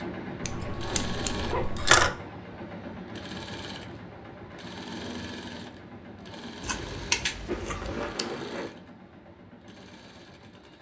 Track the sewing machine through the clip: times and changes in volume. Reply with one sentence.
You can hear the sewing machine from 0.0 to 10.7 s, getting quieter.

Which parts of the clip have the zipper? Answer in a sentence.
The zipper can be heard from 0.7 to 1.8 s and from 7.5 to 8.7 s.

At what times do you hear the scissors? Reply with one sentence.
The scissors can be heard from 0.4 to 2.1 s and from 6.6 to 8.2 s.